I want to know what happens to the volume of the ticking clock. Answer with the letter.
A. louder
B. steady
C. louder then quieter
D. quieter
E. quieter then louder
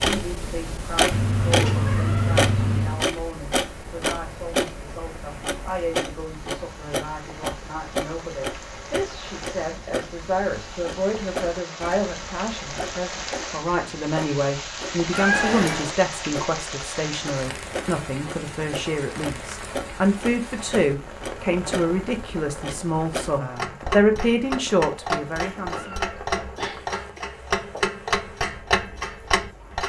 E.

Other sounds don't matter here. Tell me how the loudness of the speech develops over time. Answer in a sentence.
The volume of the speech goes up.